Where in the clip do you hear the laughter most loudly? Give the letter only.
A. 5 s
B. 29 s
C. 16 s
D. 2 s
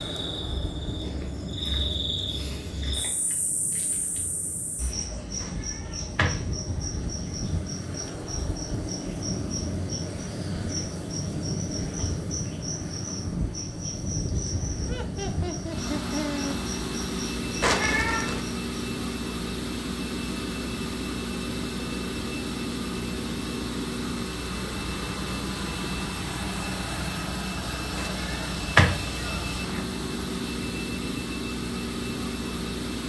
C.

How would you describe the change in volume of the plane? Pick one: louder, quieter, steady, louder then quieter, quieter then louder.
louder.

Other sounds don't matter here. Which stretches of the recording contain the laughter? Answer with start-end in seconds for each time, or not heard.
14.8-16.6.